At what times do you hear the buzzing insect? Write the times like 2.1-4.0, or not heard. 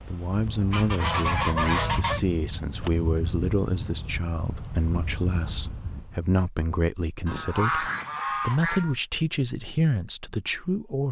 not heard.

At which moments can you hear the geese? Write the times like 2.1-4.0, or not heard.
0.7-2.2, 7.2-8.9.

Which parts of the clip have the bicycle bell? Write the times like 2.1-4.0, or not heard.
not heard.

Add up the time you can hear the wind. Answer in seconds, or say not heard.
6 s.